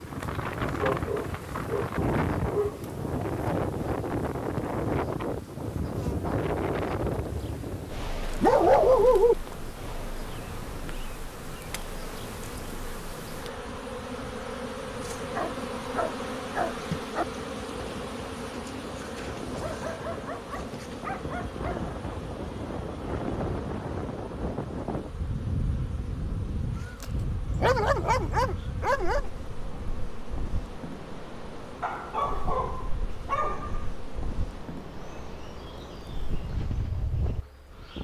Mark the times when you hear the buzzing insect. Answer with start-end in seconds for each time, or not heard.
0.0-37.9.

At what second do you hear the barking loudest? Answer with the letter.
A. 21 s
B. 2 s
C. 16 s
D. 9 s
D.